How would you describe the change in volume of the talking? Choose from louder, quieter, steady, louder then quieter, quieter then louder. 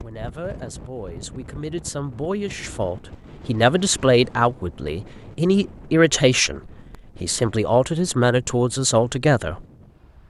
louder.